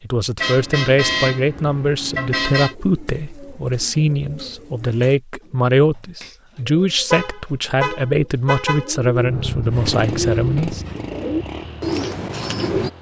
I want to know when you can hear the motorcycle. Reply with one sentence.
The motorcycle can be heard from 9.2 to 12.9 s.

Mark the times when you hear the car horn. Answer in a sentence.
You can hear the car horn from 0.3 to 2.8 s and from 7.1 to 8.9 s.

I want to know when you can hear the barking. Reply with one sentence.
The barking can't be heard in this clip.